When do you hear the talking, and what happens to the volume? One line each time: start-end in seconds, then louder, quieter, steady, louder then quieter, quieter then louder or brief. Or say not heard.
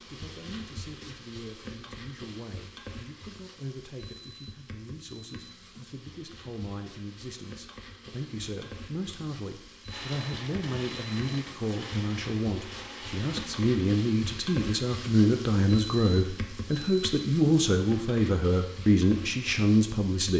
0.0-20.3 louder.